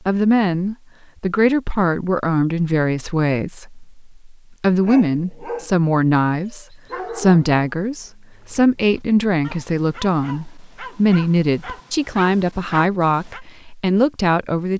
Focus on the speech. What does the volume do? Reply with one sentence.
The loudness of the speech stays about the same.